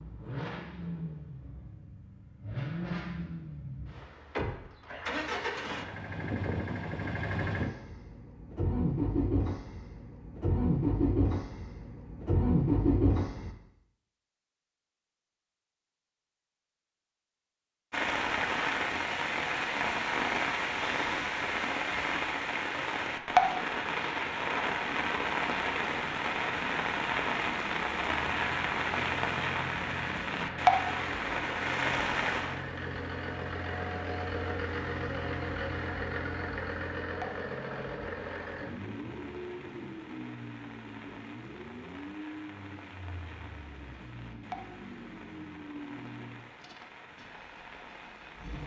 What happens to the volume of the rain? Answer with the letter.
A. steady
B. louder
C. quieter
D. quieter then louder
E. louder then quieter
C.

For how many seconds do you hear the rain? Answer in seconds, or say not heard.
31 s.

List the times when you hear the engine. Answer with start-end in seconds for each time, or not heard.
0.0-13.6, 28.1-48.6.